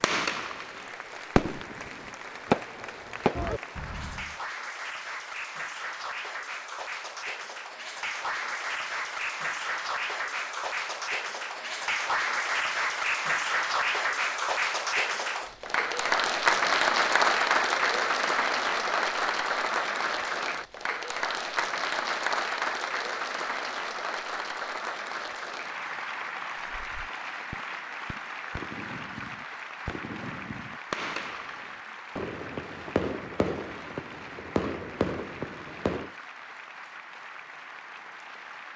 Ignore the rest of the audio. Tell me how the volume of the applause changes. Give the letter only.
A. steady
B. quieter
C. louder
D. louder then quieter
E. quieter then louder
D.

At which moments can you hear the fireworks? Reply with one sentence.
The fireworks can be heard from 0.0 to 4.3 s and from 26.8 to 36.1 s.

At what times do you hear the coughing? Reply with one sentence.
You can't hear the coughing here.